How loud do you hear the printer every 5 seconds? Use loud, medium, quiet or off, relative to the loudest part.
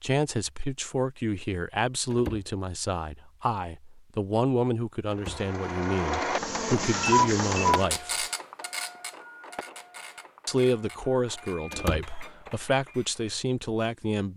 off, loud, quiet.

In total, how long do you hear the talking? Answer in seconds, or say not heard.
12 s.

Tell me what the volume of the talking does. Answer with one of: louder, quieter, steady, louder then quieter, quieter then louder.
steady.